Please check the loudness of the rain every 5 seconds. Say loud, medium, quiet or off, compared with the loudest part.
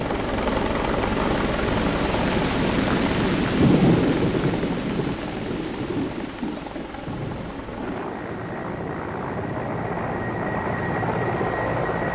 loud, medium, quiet.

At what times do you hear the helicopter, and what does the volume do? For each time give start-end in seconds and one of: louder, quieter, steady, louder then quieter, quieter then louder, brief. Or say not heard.
0.0-12.1 quieter then louder.